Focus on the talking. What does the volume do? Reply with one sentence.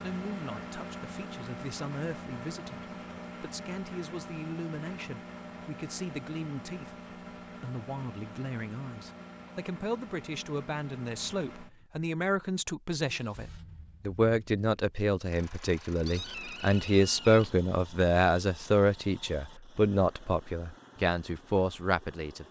The volume of the talking goes up.